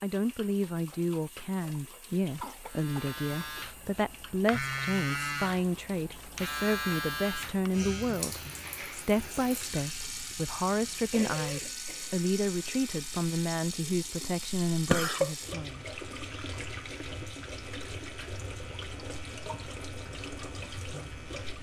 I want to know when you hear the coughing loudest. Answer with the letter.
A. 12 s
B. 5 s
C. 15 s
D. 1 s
C.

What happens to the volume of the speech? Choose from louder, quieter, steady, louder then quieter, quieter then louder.
steady.